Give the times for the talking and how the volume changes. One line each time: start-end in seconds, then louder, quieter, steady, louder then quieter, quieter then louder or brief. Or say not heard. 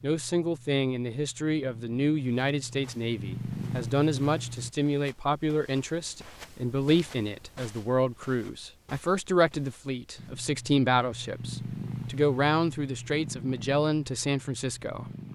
0.0-15.1 steady.